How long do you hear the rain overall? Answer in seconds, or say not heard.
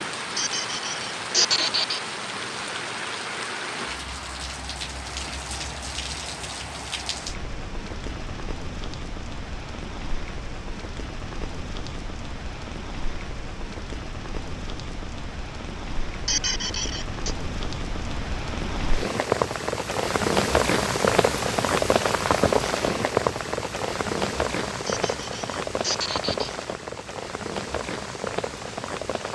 29 s.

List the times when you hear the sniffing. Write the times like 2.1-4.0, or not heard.
0.3-2.0, 16.2-17.4, 24.9-26.5.